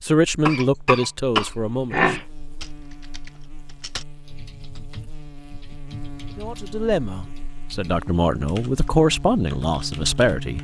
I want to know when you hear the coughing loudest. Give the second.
2 s.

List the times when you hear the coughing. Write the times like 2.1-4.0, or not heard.
0.5-2.2.